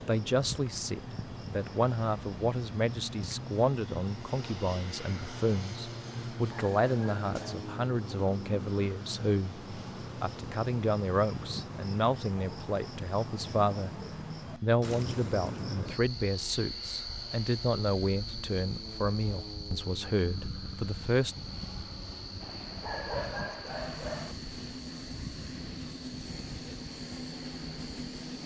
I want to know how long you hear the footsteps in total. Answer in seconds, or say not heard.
not heard.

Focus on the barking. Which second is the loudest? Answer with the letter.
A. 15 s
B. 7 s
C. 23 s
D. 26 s
C.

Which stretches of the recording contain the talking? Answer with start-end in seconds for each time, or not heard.
0.1-13.9, 14.6-21.4.